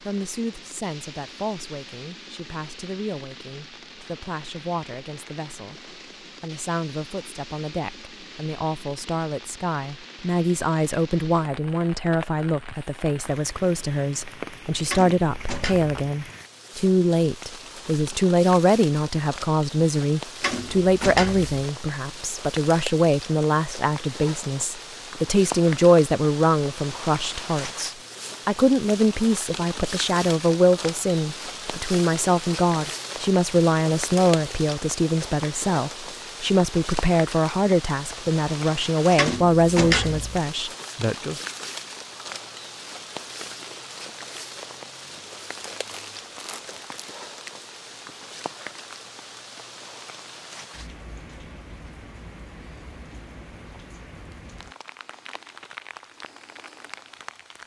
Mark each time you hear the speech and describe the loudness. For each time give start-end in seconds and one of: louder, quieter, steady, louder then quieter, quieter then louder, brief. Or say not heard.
0.0-41.4 louder.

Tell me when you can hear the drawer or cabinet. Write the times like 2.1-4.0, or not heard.
14.8-15.9, 20.4-21.6, 39.1-40.4.